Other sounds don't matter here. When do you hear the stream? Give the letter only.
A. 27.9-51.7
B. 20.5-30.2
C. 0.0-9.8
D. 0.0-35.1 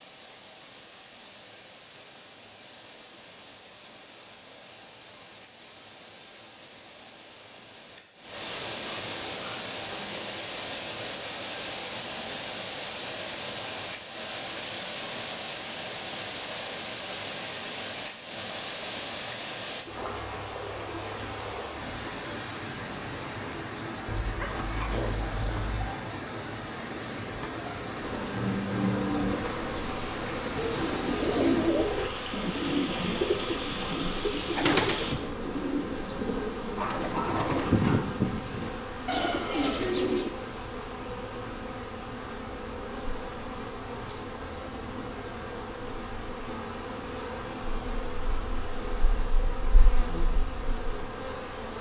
D.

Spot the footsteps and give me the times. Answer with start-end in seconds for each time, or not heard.
not heard.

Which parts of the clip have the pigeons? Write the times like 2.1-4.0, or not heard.
30.6-40.3.